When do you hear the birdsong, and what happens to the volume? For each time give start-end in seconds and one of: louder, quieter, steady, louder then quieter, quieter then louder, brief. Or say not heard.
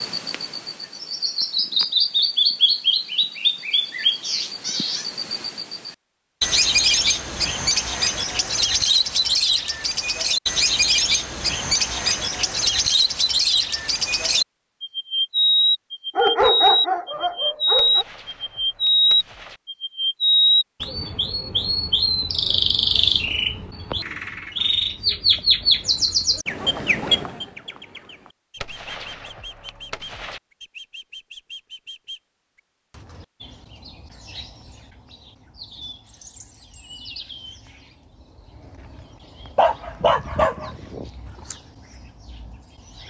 0.0-43.0 quieter.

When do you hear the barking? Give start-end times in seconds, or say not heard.
16.1-18.1, 39.5-41.5.